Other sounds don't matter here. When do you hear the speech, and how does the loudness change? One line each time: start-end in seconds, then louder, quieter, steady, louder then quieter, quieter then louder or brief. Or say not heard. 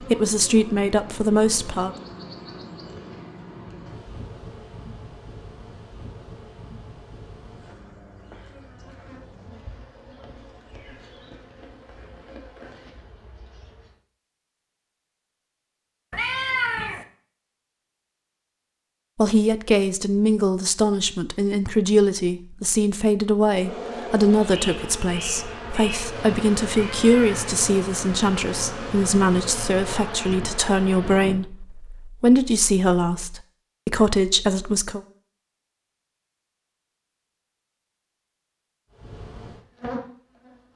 0.0-1.9 brief
19.1-35.0 steady.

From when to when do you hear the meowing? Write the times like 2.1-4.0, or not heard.
16.1-17.1, 26.7-27.6.